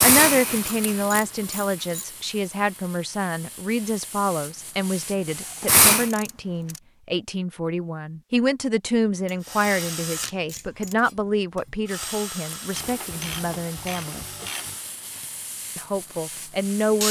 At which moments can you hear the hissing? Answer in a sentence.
The hissing can be heard from 0.0 to 6.1 s and from 12.4 to 17.0 s.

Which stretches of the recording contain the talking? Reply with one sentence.
You can hear the talking from 0.0 to 14.2 s and from 15.8 to 17.0 s.